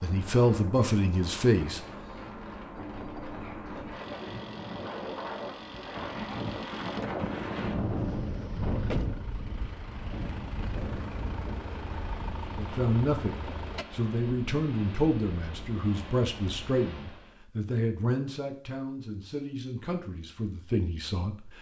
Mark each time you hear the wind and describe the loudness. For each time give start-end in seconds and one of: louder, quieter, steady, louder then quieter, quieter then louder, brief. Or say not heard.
0.0-17.4 louder then quieter.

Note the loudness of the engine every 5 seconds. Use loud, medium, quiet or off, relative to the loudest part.
loud, loud, loud, off, off.